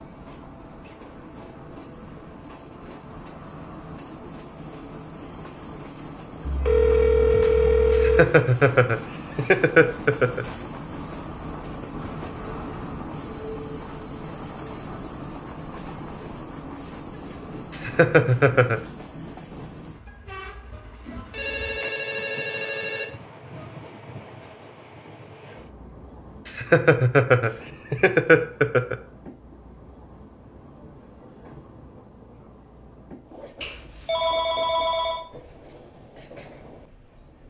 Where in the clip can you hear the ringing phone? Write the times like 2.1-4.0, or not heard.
6.5-8.2, 21.1-23.1, 33.6-35.2.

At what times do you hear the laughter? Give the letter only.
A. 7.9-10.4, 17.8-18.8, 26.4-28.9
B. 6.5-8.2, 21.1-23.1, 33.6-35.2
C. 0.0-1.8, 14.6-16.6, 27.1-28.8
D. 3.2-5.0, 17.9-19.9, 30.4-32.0
A.